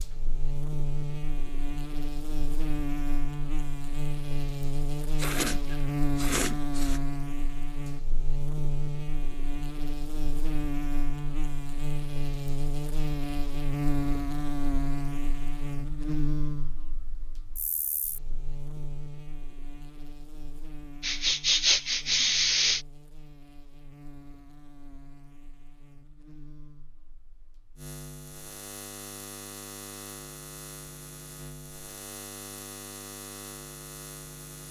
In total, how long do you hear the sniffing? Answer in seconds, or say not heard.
4 s.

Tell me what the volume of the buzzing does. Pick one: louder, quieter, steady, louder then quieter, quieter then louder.
quieter then louder.